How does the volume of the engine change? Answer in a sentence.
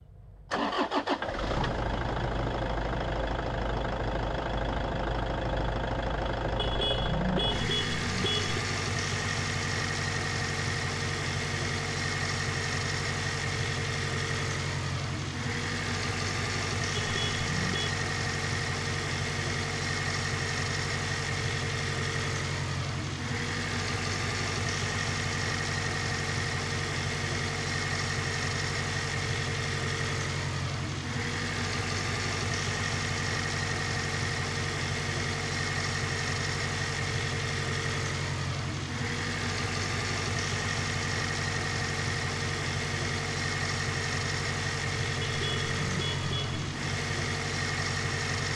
The volume of the engine stays about the same.